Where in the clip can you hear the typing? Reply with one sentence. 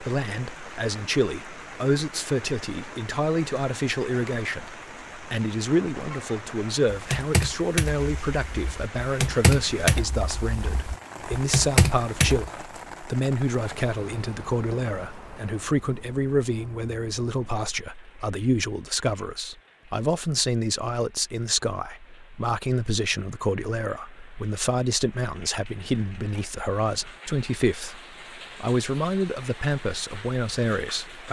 You can hear the typing from 6.9 to 12.4 s.